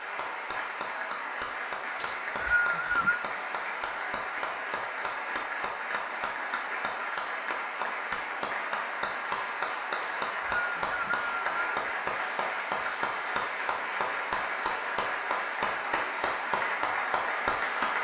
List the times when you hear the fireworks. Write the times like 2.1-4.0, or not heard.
not heard.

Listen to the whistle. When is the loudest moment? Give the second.
3 s.